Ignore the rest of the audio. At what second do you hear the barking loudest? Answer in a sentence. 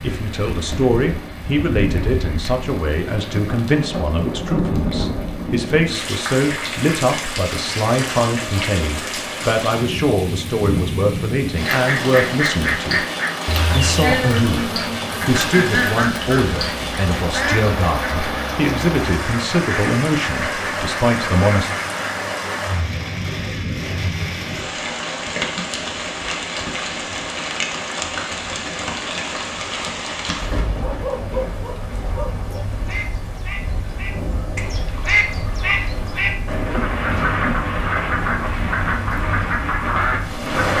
The loudest moment of the barking is at 31 seconds.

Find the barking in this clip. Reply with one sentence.
You can hear the barking from 30.8 to 32.6 s.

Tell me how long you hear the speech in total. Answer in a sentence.
You can hear the speech for 21 seconds altogether.